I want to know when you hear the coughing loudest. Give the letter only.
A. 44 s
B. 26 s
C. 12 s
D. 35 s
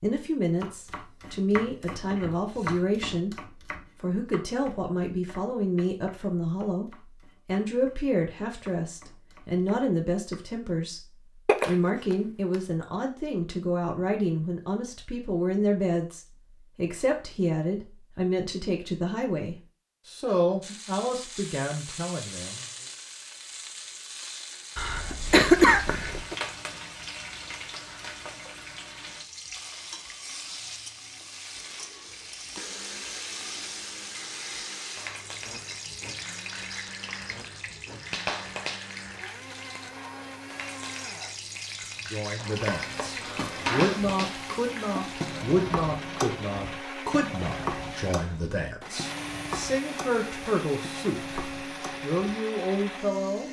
B.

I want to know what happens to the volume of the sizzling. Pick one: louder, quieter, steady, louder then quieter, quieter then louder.
steady.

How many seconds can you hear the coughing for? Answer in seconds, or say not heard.
4 s.